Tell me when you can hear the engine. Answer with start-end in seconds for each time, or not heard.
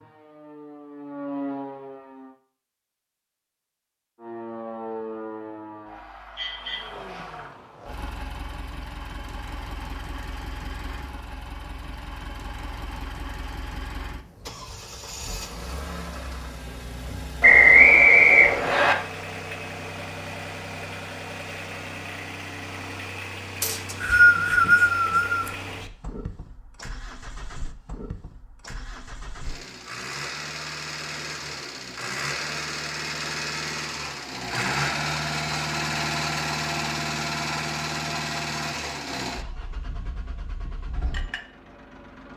6.5-42.3.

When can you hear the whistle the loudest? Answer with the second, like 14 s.
18 s.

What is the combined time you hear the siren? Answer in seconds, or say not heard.
6 s.